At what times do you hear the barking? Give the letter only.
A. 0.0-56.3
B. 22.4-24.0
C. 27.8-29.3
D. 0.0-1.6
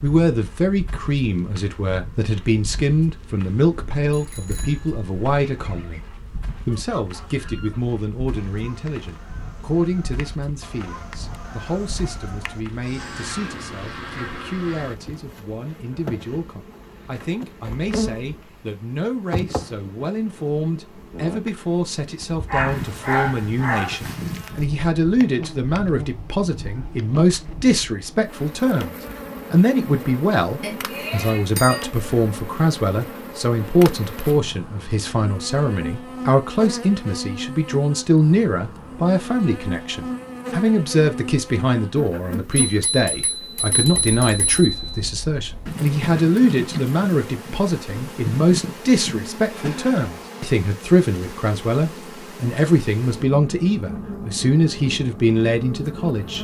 B.